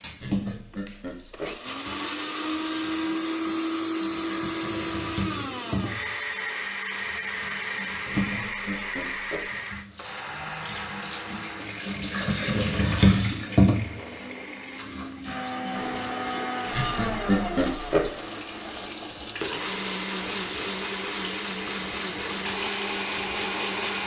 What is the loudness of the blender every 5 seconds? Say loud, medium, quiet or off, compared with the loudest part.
loud, loud, medium, loud, loud.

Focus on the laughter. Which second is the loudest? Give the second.
17 s.